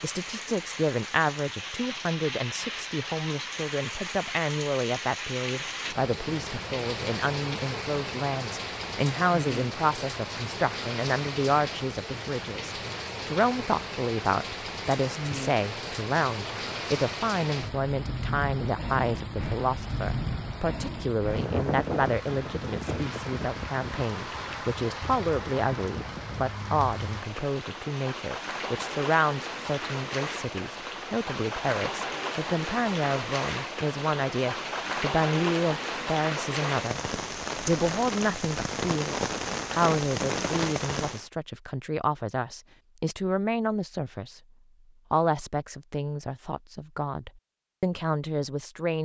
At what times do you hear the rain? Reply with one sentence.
The rain can be heard from 0.0 to 41.3 s.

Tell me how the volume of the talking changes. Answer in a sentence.
The loudness of the talking stays about the same.